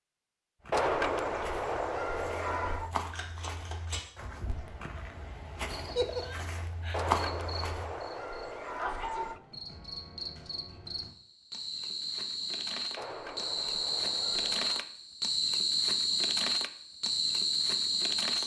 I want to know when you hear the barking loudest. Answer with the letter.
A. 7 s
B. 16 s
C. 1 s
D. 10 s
C.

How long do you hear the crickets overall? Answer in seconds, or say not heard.
13 s.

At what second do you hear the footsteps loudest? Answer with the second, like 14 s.
7 s.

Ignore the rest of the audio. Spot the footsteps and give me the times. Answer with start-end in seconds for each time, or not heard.
0.6-8.0.